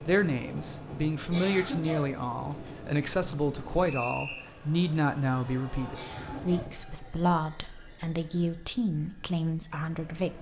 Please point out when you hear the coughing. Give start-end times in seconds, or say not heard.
1.3-2.1, 5.9-6.8.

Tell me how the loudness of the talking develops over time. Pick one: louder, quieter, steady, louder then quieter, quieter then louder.
steady.